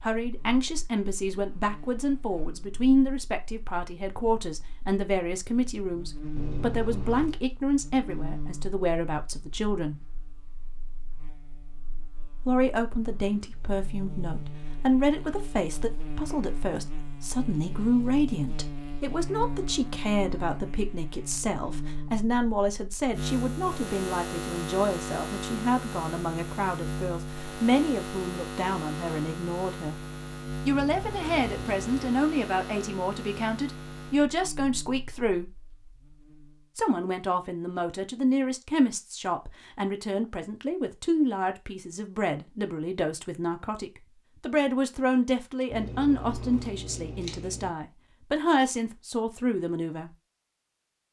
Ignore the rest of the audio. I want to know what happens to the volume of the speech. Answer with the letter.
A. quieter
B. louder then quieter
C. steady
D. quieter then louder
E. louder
C.